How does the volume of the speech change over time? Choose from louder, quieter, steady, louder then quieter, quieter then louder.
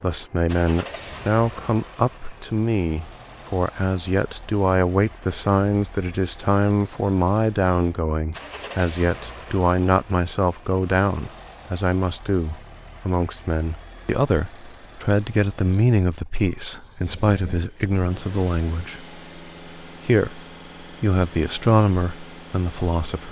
steady.